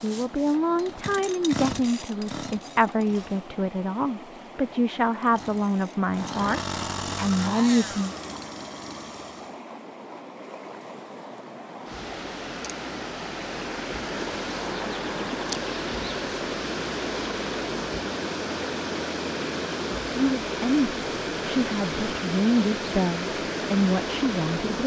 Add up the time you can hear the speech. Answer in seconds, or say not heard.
13 s.